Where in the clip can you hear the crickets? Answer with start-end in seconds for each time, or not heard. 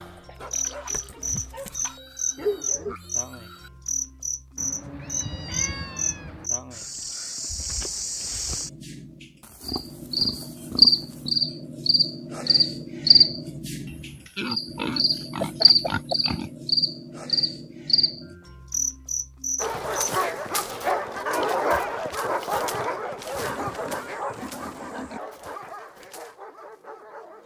0.0-20.1.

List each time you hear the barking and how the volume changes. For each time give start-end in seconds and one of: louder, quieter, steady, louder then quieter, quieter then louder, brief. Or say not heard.
0.0-3.0 brief
19.6-27.4 quieter.